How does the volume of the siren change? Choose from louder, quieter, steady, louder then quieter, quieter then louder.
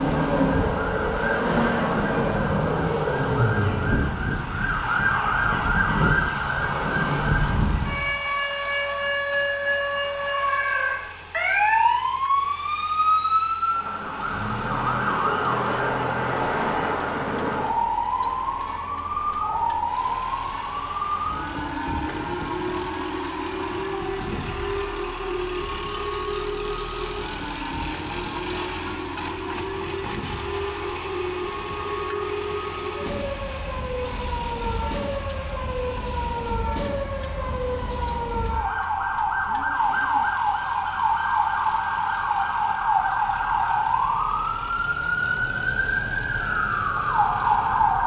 quieter then louder.